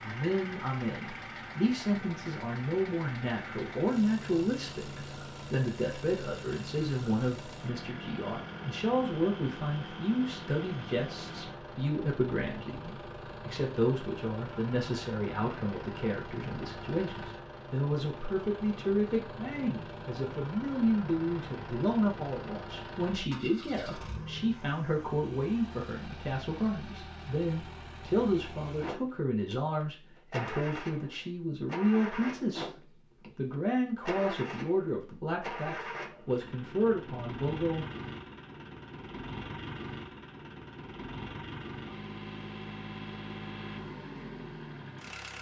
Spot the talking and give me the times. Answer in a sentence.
You can hear the talking from 0.0 to 32.8 s and from 33.4 to 37.9 s.